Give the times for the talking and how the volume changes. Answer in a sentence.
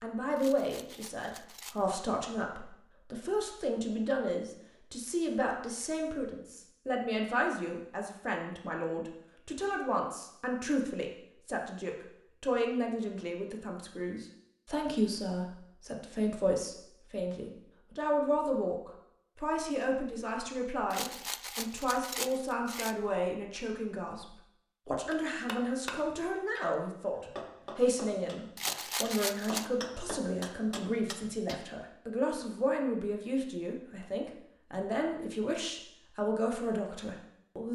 You can hear the talking from 0.0 to 37.7 s, at a steady volume.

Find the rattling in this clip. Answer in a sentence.
You can hear the rattling from 0.3 to 2.0 s, from 20.9 to 22.9 s and from 28.6 to 29.6 s.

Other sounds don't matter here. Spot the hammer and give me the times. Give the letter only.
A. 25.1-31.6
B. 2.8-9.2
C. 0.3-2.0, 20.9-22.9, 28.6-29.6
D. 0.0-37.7
A.